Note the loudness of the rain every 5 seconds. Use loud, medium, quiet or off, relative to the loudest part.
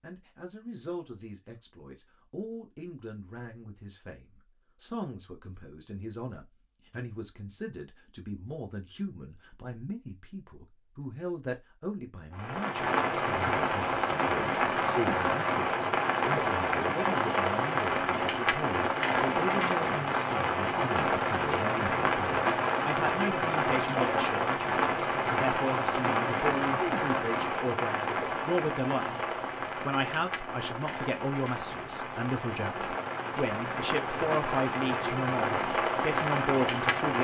off, off, loud, loud, loud, loud, medium, loud.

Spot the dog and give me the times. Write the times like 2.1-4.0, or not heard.
not heard.